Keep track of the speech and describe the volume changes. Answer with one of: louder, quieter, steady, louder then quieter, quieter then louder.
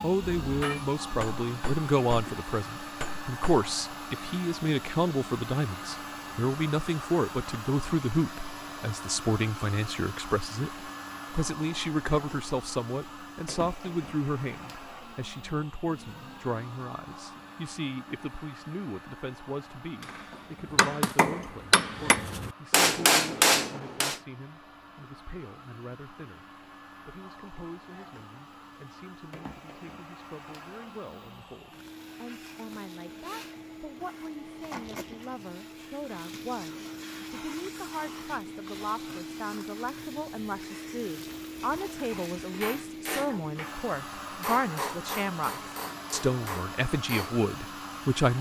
quieter then louder.